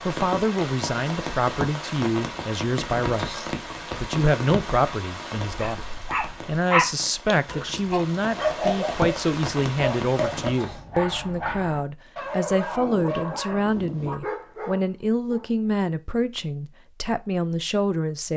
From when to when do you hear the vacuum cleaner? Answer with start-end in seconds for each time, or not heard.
not heard.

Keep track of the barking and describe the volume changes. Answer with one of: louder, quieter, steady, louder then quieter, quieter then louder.
quieter.